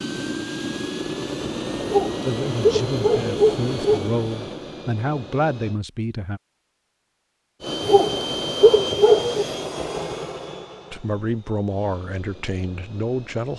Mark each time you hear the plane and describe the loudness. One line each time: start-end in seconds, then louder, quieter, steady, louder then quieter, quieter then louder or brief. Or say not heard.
0.0-5.8 quieter
7.6-13.5 quieter.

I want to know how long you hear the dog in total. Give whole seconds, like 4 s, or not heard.
4 s.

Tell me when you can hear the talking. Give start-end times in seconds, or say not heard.
2.2-6.4, 10.9-13.5.